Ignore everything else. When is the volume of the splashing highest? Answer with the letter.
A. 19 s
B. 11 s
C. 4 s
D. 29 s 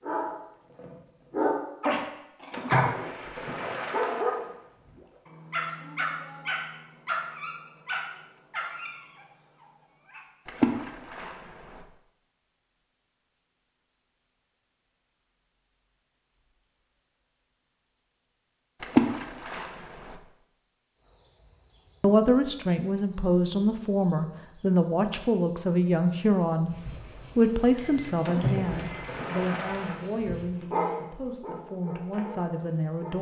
A.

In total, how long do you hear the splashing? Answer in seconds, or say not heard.
7 s.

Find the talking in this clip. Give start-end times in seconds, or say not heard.
22.0-33.1.